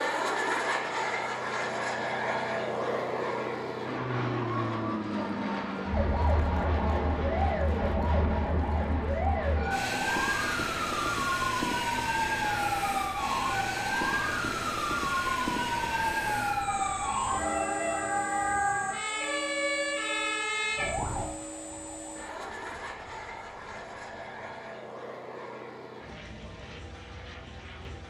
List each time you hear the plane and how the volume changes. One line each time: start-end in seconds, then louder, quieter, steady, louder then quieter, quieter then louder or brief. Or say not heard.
0.0-28.0 quieter.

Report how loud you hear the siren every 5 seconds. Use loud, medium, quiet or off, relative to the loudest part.
off, loud, loud, loud, medium, off.